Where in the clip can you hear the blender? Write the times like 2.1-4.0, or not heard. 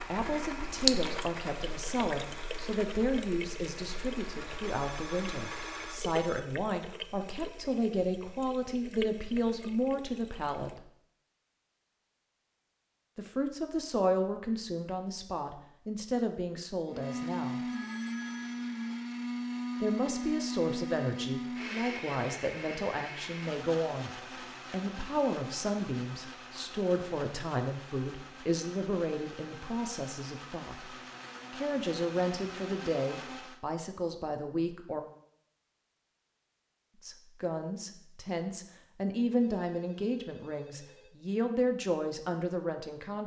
0.0-6.1, 16.9-33.6.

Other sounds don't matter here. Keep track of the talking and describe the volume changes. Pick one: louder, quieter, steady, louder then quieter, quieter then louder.
steady.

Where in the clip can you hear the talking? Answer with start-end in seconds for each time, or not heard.
0.1-10.8, 13.2-17.6, 19.8-24.1, 24.7-35.0, 37.0-43.2.